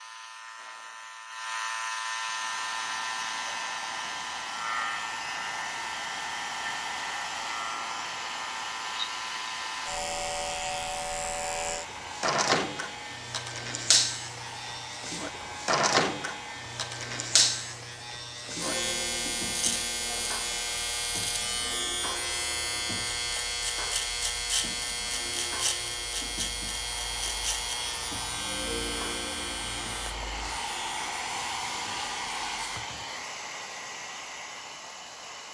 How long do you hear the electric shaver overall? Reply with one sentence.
You can hear the electric shaver for 33 seconds altogether.